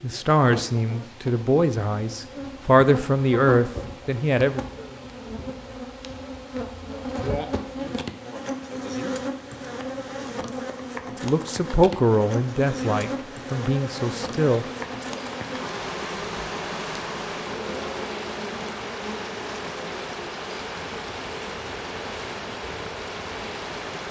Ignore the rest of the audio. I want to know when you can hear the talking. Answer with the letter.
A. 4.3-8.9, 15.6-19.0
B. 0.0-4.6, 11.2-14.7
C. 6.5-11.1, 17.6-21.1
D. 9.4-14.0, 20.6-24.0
B.